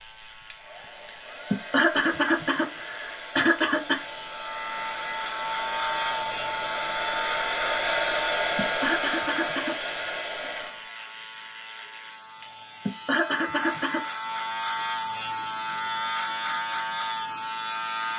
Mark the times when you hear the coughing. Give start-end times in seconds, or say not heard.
1.5-4.0, 8.6-10.5, 12.8-14.1.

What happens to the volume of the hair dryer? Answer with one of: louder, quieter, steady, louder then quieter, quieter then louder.
louder.